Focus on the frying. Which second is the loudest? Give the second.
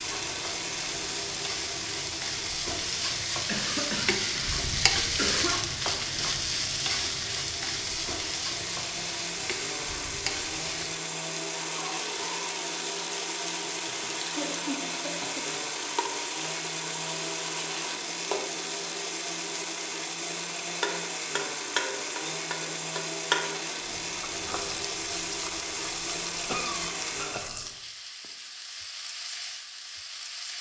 5 s.